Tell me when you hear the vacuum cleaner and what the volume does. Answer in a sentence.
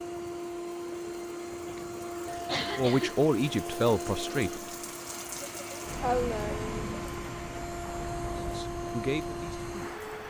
You can hear the vacuum cleaner from 0.0 to 10.2 s, at a steady volume.